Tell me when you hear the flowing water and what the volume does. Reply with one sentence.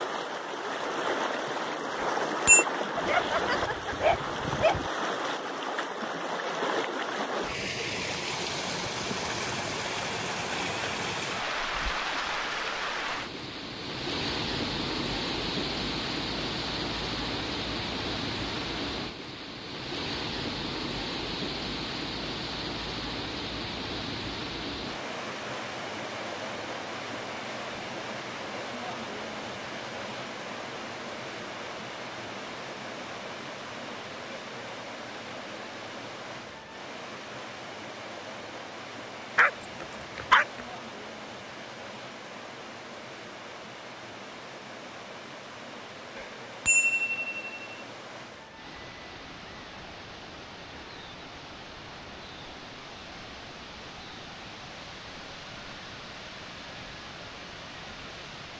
You can hear the flowing water from 0.0 to 58.5 s, getting quieter.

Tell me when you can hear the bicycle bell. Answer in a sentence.
You can hear the bicycle bell from 1.9 to 2.6 s and from 46.1 to 47.5 s.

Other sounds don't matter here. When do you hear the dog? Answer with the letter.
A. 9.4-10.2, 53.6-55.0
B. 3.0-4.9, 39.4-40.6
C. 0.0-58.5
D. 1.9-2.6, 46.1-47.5
B.